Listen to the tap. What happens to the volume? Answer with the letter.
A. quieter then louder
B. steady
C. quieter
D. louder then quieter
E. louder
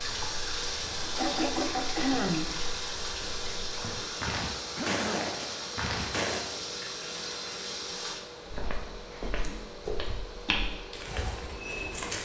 C.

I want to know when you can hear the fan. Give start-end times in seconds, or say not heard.
0.0-12.1.